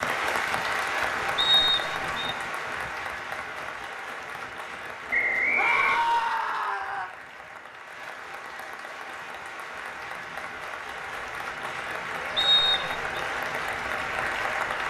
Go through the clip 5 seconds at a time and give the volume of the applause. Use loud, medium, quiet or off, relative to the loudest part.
loud, medium, loud.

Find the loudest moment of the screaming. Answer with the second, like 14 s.
6 s.